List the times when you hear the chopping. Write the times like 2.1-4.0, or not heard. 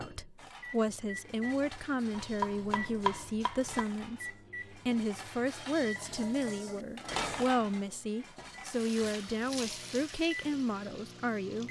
2.1-3.9.